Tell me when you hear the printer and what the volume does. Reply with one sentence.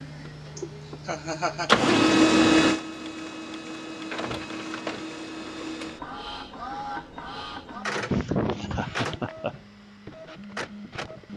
You can hear the printer from 0.0 to 11.3 s, getting quieter.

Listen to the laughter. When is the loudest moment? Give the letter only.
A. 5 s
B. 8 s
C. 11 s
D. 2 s
B.